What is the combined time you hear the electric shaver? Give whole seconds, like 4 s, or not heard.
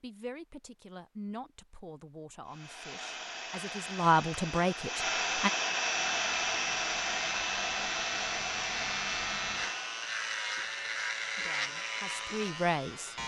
7 s.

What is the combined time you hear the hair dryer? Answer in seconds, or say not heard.
8 s.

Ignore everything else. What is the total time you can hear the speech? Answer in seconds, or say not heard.
7 s.